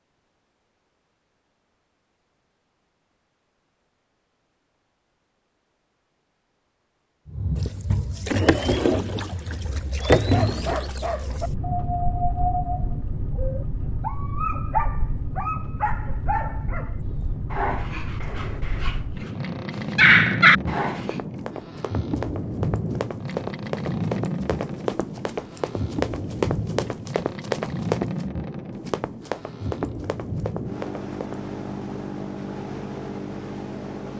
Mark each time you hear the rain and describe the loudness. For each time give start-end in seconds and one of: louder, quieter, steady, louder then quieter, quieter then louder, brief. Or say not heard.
not heard.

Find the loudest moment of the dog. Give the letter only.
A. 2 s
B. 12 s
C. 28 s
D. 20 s
D.